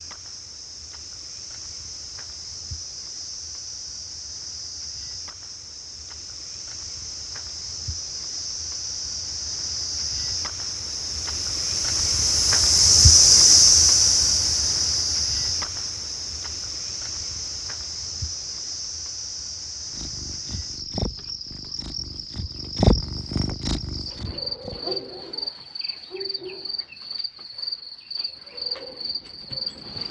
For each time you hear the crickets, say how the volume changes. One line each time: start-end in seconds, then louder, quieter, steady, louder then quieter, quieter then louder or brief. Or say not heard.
0.0-30.0 louder then quieter.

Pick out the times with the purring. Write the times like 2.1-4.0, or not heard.
19.9-24.8.